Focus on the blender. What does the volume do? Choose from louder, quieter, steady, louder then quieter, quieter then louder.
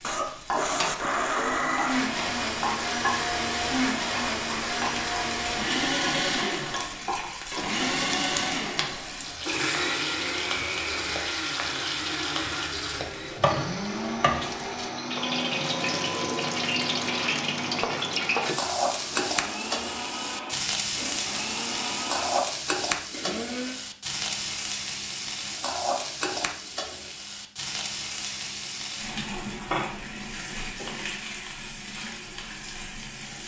quieter.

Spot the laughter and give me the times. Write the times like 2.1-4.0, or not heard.
not heard.